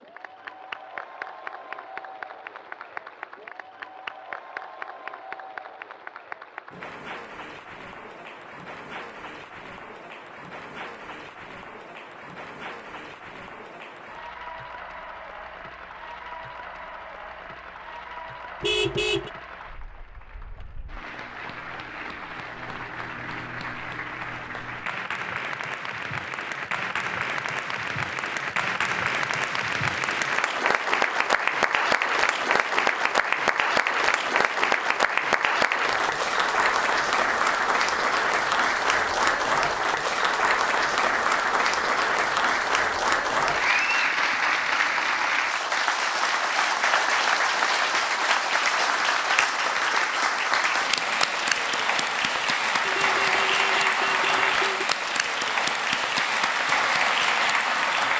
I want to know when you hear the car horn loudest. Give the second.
19 s.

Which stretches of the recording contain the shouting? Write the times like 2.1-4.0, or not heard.
not heard.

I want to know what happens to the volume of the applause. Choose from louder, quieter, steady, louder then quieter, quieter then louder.
louder.